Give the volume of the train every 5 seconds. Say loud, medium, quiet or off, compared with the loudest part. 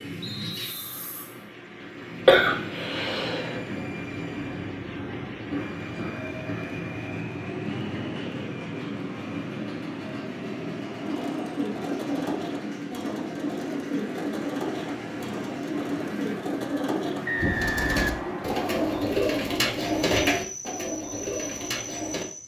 loud, loud, loud, loud, medium.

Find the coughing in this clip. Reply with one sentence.
The coughing can be heard from 2.2 to 3.6 s.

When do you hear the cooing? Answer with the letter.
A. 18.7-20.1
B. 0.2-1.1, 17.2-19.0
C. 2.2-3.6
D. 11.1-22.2
D.